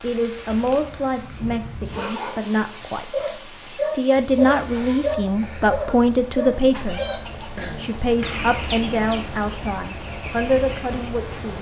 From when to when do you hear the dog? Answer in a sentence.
The dog can be heard from 1.9 to 7.2 s.